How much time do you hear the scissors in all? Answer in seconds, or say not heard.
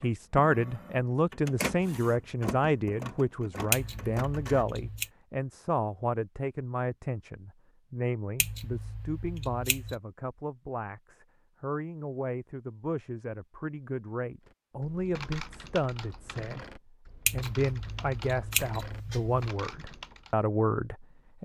5 s.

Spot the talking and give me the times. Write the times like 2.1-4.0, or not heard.
0.0-21.4.